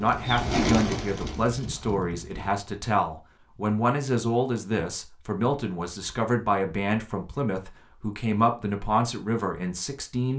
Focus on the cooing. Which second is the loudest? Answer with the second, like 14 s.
1 s.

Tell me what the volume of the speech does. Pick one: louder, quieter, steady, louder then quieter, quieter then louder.
steady.